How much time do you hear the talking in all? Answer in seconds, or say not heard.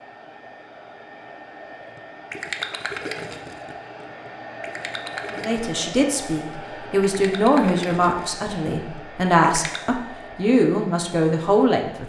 7 s.